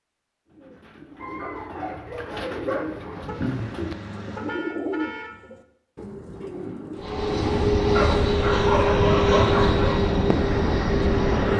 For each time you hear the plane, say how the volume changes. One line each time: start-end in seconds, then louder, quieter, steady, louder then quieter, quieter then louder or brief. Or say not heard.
7.0-11.5 steady.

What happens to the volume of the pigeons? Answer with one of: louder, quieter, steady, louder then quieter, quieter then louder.
louder then quieter.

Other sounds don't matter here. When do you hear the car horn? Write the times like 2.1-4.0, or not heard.
3.2-5.3.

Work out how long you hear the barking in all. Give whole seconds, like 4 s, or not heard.
4 s.